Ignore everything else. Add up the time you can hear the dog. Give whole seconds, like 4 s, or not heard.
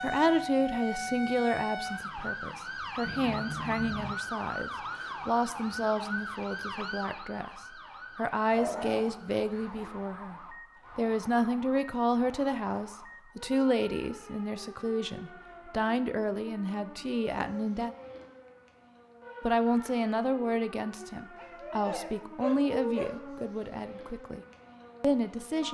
3 s.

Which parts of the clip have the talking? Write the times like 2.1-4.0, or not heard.
0.0-17.9, 19.4-24.4, 25.0-25.6.